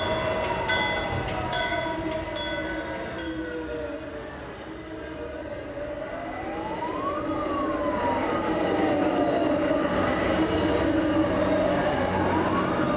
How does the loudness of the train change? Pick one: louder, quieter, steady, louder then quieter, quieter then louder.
quieter then louder.